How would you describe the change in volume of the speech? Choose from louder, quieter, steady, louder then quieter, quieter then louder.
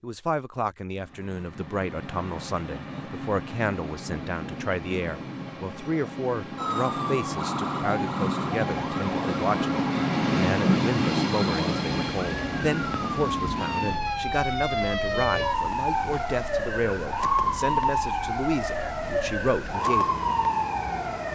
steady.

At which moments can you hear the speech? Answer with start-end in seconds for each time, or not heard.
0.0-20.1.